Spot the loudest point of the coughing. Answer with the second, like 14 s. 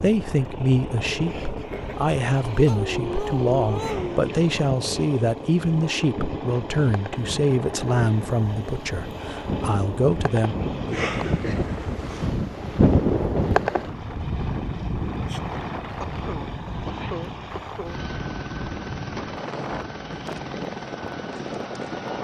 11 s.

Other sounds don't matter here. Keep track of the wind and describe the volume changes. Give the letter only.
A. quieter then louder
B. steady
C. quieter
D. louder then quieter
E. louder
D.